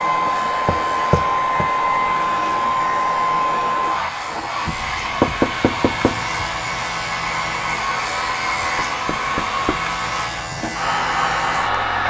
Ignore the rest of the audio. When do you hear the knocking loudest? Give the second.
5 s.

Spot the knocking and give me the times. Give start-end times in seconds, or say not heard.
0.2-1.7, 4.8-6.2, 8.8-9.8.